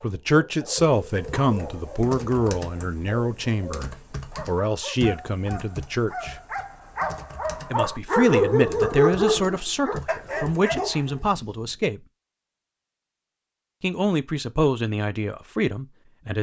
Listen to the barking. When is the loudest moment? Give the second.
9 s.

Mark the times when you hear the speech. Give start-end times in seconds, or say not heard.
0.0-6.3, 7.7-12.0, 13.8-16.3.